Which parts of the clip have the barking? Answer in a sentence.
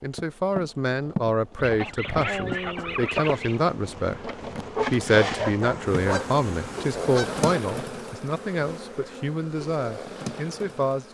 You can hear the barking from 5.2 to 6.3 s.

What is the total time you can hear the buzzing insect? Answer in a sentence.
The buzzing insect can be heard for 11 seconds in total.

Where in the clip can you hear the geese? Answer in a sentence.
The geese can be heard from 1.6 to 3.6 s and from 5.6 to 7.5 s.